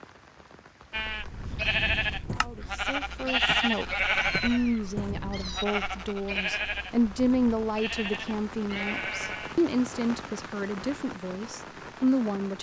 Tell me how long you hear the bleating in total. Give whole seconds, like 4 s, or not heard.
9 s.